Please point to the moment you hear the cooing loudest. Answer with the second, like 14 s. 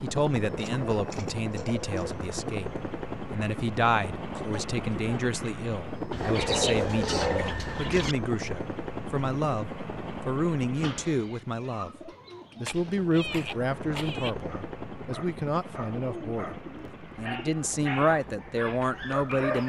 7 s.